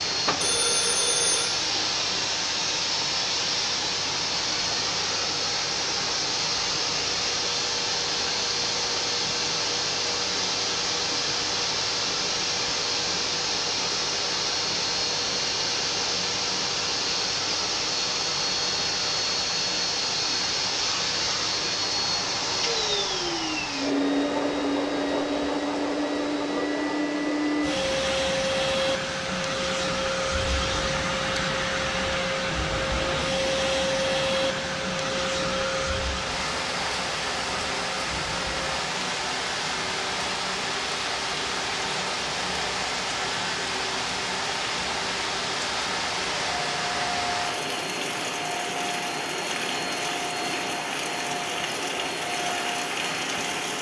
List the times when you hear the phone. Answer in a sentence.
You can hear the phone from 0.4 to 1.6 s.